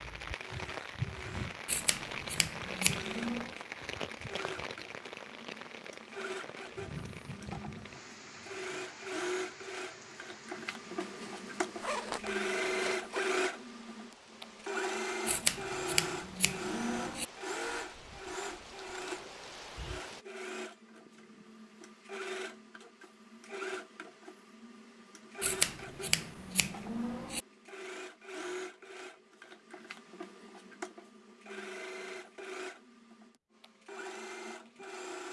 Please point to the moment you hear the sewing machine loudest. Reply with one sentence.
The volume of the sewing machine peaks at 13 seconds.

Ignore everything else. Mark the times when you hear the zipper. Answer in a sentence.
You can hear the zipper from 11.0 to 13.3 s.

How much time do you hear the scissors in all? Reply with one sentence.
You can hear the scissors for 6 seconds altogether.